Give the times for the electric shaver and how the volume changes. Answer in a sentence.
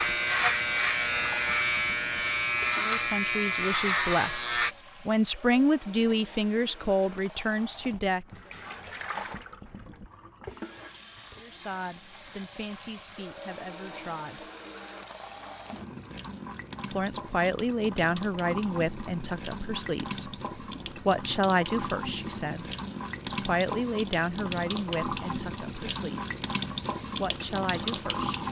You can hear the electric shaver from 0.0 to 4.8 s, at a steady volume.